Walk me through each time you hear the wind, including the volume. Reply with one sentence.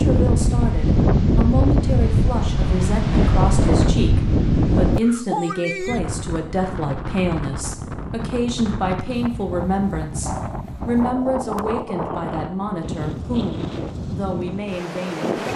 You can hear the wind from 0.0 to 15.5 s, getting quieter.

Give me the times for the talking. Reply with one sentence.
You can hear the talking from 0.0 to 15.5 s.